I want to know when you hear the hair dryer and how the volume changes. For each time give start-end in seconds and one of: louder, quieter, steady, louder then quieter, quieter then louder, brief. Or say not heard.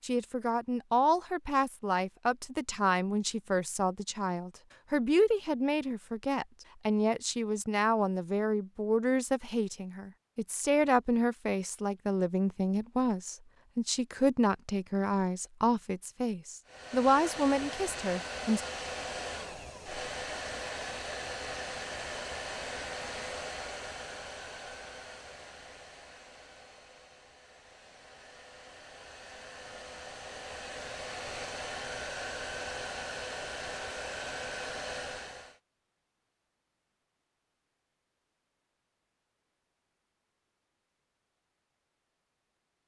16.6-35.6 quieter then louder.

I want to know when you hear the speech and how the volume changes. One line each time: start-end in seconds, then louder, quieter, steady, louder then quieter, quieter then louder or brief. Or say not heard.
0.0-18.6 steady.